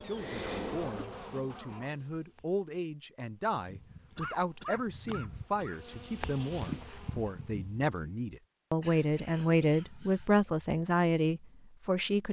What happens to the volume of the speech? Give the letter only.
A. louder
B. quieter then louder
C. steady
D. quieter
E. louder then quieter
A.